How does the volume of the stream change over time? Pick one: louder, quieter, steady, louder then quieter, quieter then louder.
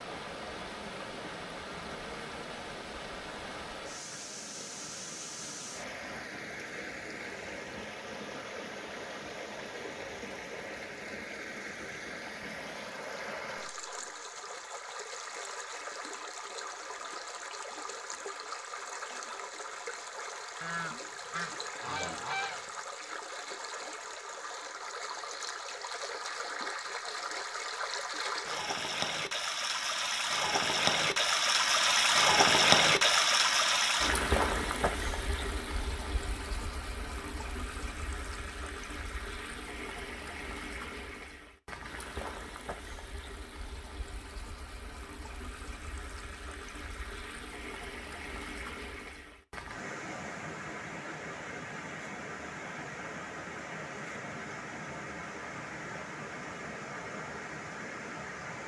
louder then quieter.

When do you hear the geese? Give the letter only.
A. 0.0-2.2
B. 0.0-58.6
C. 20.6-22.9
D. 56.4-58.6
C.